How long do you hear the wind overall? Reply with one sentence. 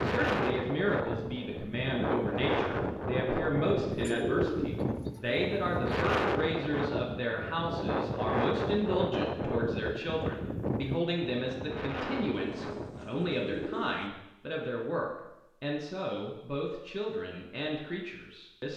The wind can be heard for 14 seconds in total.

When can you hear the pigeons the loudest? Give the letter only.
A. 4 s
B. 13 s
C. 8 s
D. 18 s
A.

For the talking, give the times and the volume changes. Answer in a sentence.
You can hear the talking from 0.0 to 18.7 s, at a steady volume.